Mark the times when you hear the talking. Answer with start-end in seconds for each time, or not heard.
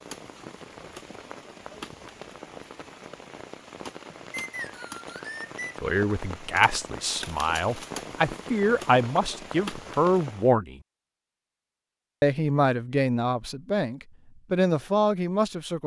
5.8-10.8, 12.2-15.8.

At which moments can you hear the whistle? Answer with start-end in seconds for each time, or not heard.
4.3-5.8.